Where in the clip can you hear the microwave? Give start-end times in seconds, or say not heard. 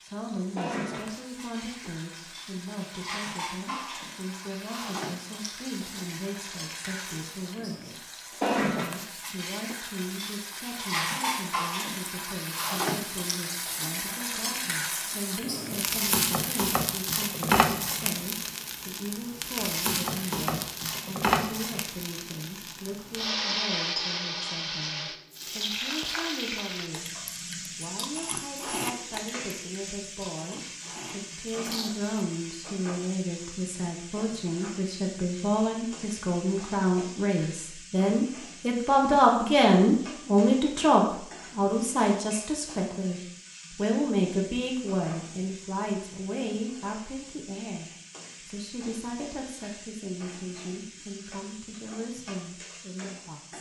not heard.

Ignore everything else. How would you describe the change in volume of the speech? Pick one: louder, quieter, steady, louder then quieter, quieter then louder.
louder then quieter.